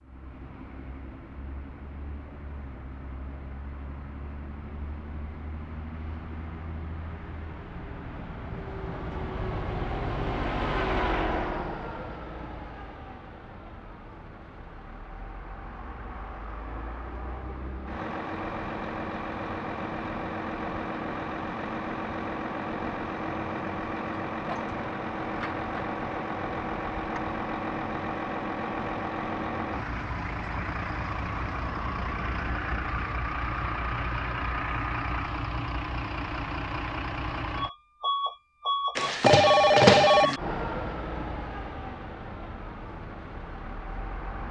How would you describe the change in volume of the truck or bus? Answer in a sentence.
The volume of the truck or bus goes up.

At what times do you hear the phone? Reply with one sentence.
The phone can be heard from 39.0 to 40.4 s.